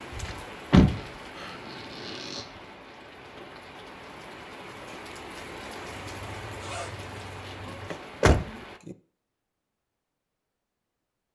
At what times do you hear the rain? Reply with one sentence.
You can hear the rain from 0.0 to 8.8 s.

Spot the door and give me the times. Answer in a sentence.
The door can be heard from 0.2 to 1.5 s and from 7.9 to 8.9 s.